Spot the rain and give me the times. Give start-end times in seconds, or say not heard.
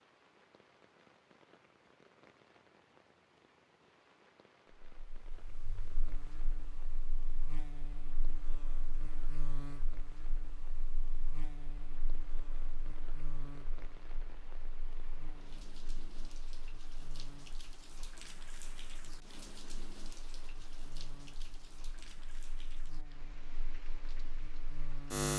0.0-25.3.